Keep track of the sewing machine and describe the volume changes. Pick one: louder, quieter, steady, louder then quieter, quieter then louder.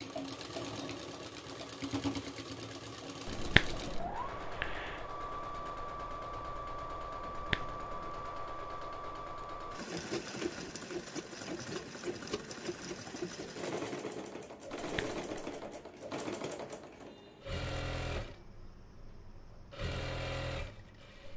steady.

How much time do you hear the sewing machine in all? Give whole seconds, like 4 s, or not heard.
21 s.